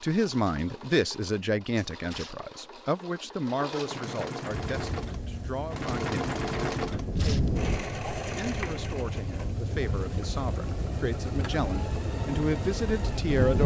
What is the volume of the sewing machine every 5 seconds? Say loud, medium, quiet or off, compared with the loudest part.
medium, loud, medium.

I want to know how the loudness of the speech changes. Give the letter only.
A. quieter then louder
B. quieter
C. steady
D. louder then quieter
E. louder
A.